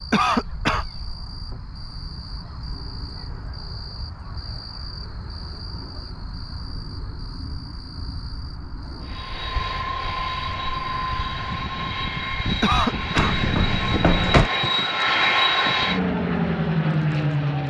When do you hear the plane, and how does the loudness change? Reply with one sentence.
The plane can be heard from 9.0 to 17.6 s, getting louder.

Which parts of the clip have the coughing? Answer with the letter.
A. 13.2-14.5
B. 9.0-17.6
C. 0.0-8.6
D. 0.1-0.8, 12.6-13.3
D.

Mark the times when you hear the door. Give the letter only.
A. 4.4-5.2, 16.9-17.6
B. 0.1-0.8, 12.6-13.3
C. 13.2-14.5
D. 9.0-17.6
C.